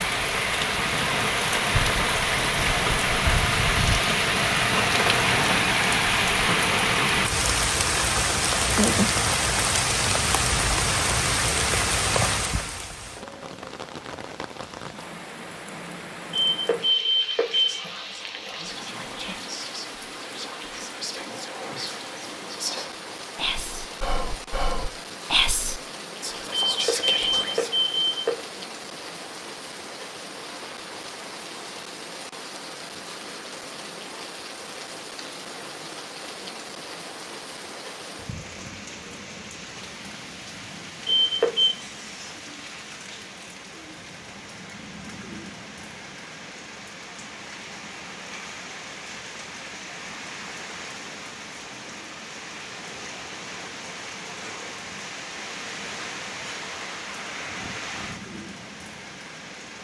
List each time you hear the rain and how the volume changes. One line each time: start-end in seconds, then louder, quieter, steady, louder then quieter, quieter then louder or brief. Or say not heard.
0.0-59.7 quieter.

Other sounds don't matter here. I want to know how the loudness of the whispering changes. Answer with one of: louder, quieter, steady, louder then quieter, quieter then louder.
louder.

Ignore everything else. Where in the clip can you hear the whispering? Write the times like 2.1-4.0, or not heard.
17.4-27.7.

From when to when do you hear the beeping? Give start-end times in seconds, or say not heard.
16.3-17.8, 26.5-28.4, 41.0-41.8.